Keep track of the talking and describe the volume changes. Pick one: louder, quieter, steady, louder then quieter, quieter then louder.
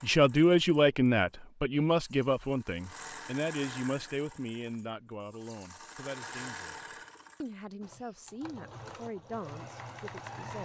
quieter.